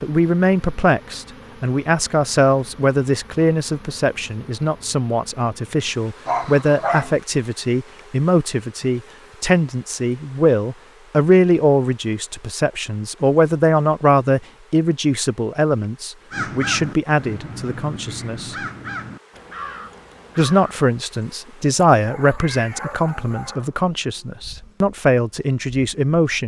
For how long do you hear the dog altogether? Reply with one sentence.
The dog can be heard for 3 seconds in total.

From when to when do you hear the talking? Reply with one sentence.
You can hear the talking from 0.0 to 18.6 s and from 20.4 to 26.4 s.